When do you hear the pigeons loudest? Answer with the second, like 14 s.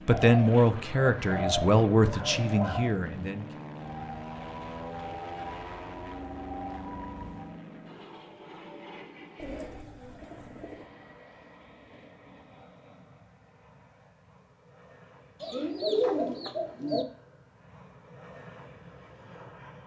16 s.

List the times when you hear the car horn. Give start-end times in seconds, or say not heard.
not heard.